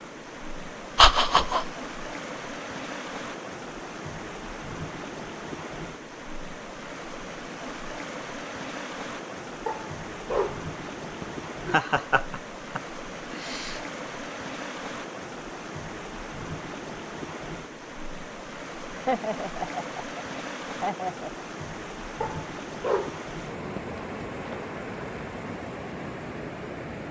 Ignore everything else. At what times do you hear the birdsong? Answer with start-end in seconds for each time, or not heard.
not heard.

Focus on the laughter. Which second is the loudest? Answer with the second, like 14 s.
1 s.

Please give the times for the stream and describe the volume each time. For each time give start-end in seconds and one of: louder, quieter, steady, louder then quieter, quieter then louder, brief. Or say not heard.
0.0-27.0 steady.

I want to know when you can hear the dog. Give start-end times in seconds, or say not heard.
9.7-11.4, 22.2-24.6.